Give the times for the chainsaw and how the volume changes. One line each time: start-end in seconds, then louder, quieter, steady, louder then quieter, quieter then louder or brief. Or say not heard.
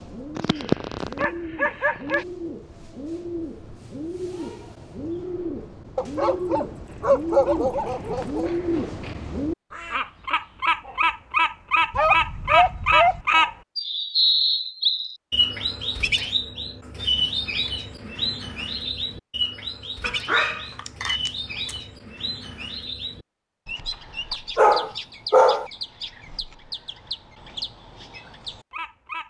not heard.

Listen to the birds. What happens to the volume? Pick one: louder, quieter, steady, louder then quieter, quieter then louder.
louder then quieter.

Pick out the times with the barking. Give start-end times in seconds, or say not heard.
0.3-2.2, 6.0-8.5, 11.9-13.2, 20.0-21.8, 24.6-25.7.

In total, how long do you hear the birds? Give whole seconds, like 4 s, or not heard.
29 s.